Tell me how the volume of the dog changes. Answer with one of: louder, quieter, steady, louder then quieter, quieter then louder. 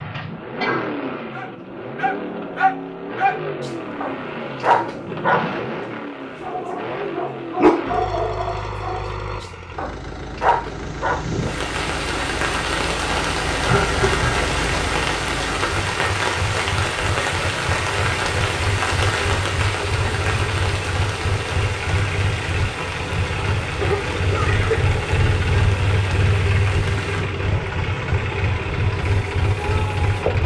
quieter then louder.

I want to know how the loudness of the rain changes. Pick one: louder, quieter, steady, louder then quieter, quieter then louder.
quieter.